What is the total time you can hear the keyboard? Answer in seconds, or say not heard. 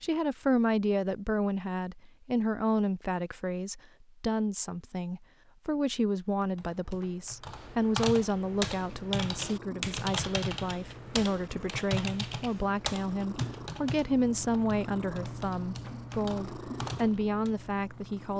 11 s.